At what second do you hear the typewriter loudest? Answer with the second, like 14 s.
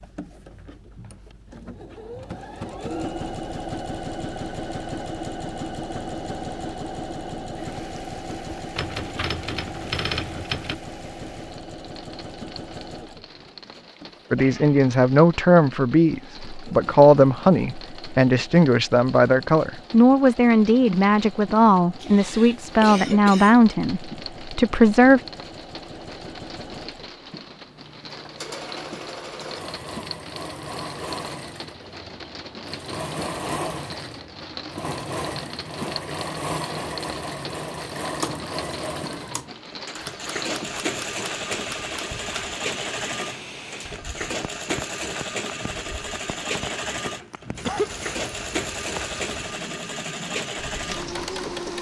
10 s.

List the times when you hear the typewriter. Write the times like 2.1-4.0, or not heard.
8.8-10.8, 40.0-42.5.